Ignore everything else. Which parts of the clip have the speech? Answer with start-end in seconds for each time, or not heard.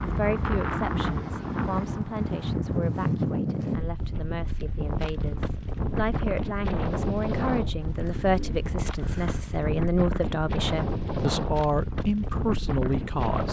0.0-13.4.